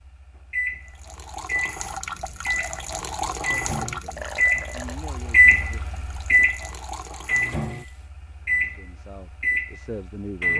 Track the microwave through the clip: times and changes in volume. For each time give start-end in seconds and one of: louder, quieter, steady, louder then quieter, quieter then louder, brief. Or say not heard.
0.0-10.5 louder then quieter.